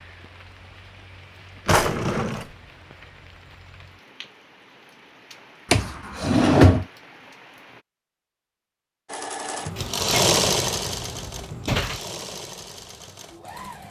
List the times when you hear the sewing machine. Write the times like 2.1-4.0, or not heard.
9.1-13.8.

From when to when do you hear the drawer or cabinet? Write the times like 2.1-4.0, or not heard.
1.6-2.5, 5.7-6.8, 9.8-12.0.